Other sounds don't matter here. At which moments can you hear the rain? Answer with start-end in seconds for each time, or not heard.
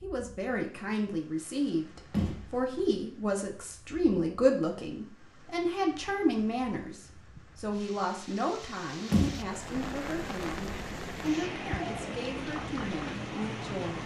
0.0-14.0.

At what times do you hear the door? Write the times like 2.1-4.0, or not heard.
2.1-2.8, 9.1-9.8.